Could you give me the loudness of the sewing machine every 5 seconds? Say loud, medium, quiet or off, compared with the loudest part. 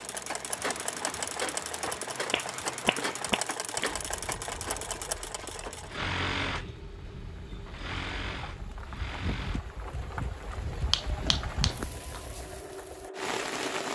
loud, loud, medium.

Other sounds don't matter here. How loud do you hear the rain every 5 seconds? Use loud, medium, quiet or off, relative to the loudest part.
medium, medium, loud.